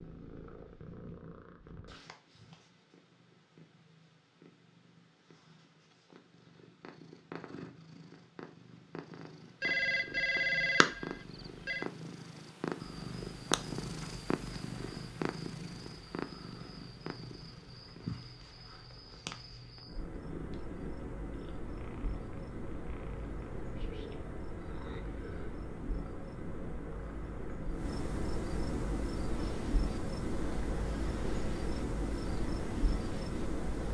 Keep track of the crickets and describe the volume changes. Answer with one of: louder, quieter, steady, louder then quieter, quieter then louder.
louder.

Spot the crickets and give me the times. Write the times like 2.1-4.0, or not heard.
12.8-33.8.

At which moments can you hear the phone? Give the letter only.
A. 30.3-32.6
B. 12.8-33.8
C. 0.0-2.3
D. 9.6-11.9
D.